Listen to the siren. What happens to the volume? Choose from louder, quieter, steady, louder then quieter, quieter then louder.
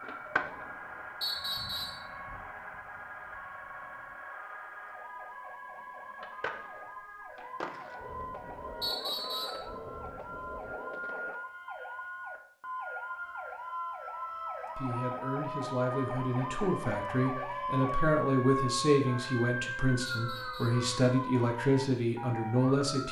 louder.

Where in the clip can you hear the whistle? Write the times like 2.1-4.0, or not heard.
1.2-2.0, 8.8-9.7, 20.1-20.9.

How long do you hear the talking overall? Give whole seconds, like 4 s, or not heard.
8 s.